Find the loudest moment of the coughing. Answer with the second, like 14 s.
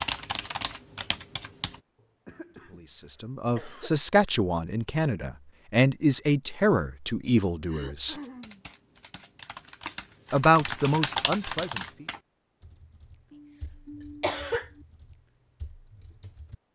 14 s.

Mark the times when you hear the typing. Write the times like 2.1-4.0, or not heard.
0.0-1.8, 8.1-16.6.